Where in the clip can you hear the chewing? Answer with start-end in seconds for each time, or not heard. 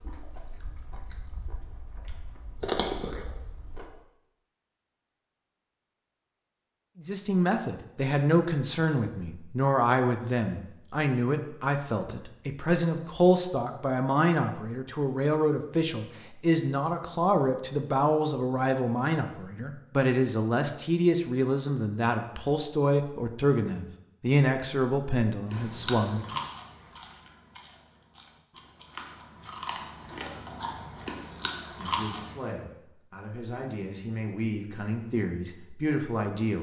0.0-3.9, 25.5-32.4.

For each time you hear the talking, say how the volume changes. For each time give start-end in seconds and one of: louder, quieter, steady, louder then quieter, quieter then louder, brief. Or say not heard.
7.0-26.4 steady
31.8-36.5 louder.